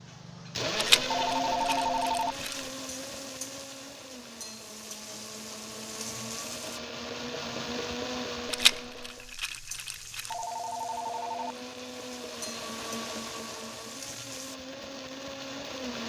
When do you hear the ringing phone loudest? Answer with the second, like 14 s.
2 s.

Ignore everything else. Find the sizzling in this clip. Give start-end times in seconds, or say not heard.
2.3-6.8, 9.1-14.6.